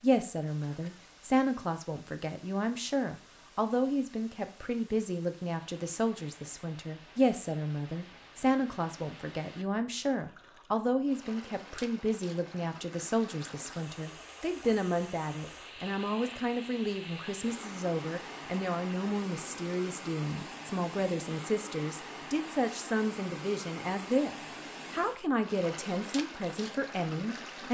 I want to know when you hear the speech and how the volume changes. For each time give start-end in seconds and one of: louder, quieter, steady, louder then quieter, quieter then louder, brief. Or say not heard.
0.0-27.6 steady.